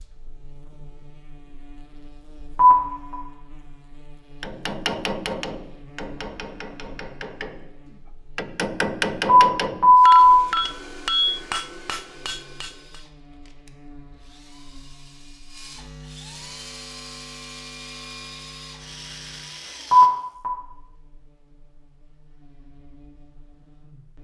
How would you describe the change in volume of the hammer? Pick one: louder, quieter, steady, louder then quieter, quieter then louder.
quieter then louder.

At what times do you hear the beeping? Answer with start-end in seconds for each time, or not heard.
2.5-3.1, 9.2-10.2, 19.9-20.5.